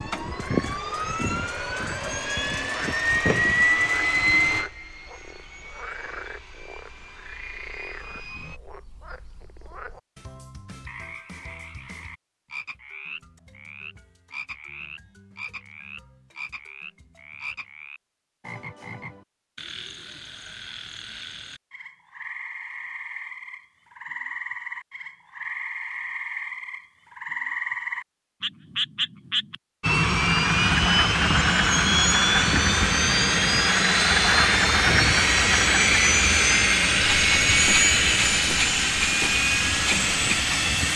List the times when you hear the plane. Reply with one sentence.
The plane can be heard from 0.0 to 8.6 s and from 29.8 to 40.9 s.